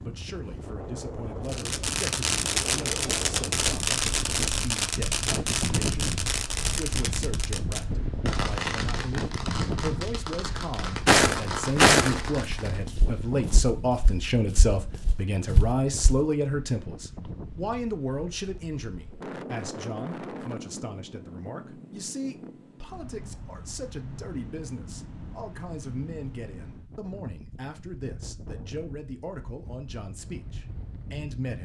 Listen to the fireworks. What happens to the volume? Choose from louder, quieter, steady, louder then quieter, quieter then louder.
quieter.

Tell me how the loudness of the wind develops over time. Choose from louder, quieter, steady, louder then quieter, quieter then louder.
quieter.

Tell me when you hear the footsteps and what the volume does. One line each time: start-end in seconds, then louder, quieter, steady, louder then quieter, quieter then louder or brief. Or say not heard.
11.1-16.2 quieter then louder.